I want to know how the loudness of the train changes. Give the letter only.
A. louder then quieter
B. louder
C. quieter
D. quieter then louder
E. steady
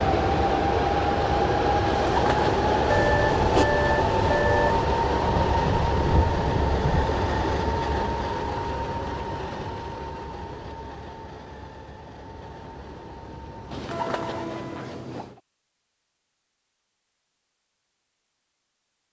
C.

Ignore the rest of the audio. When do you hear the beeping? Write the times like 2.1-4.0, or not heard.
2.9-4.8.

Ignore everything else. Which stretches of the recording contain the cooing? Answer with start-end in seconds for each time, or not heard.
1.9-3.6, 13.7-15.4.